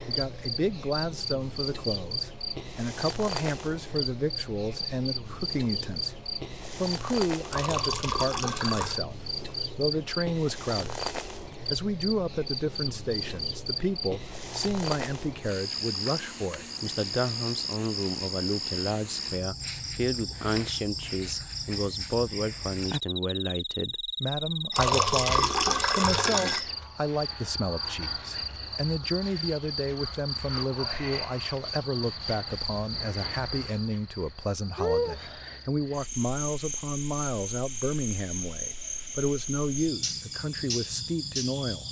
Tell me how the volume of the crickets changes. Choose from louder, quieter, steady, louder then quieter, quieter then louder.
steady.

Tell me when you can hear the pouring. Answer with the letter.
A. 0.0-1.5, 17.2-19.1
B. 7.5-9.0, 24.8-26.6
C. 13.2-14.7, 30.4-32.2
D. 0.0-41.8
B.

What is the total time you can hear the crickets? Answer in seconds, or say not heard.
42 s.